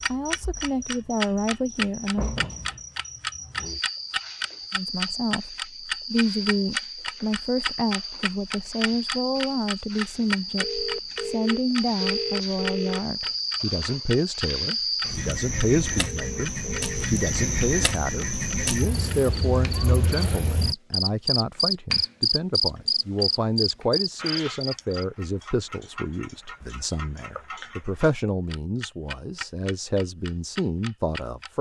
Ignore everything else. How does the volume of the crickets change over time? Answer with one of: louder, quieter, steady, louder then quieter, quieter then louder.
louder.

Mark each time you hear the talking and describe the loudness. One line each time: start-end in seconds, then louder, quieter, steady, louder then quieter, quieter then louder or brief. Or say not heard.
0.1-2.3 brief
4.7-31.5 steady.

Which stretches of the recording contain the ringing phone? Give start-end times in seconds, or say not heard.
10.6-13.0, 16.1-17.1.